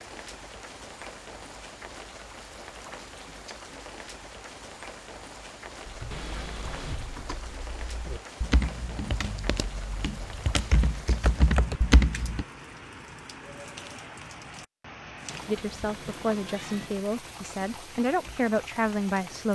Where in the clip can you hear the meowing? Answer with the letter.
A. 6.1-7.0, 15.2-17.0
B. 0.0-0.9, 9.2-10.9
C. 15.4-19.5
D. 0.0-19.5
A.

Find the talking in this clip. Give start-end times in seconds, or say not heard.
15.4-19.5.